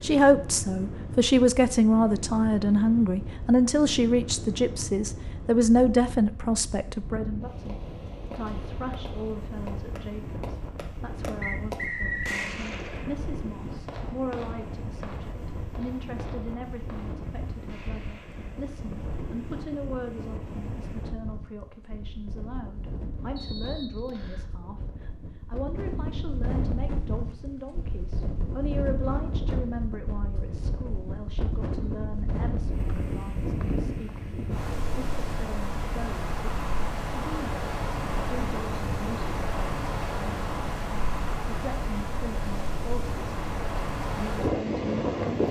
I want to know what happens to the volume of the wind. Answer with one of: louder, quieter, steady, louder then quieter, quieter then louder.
louder.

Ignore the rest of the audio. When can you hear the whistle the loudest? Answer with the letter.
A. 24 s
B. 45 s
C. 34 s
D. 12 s
D.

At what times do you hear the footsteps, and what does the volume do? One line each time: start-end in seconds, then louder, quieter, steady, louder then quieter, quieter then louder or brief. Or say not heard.
not heard.